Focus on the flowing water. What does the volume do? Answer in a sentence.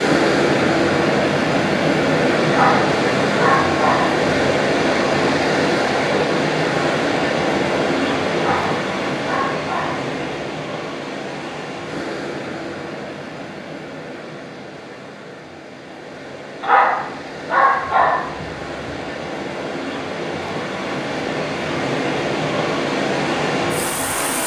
The loudness of the flowing water goes down, then up.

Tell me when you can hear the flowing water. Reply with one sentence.
You can hear the flowing water from 0.0 to 24.4 s.